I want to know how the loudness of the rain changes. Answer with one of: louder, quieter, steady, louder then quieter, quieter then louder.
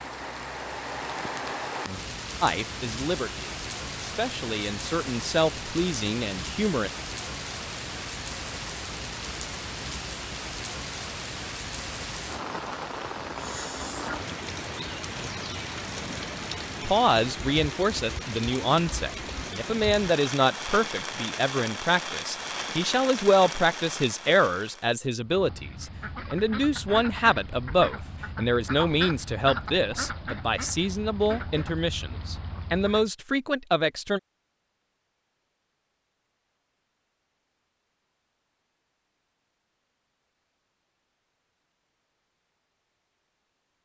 steady.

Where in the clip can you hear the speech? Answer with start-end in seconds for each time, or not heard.
2.4-6.9, 16.8-34.2.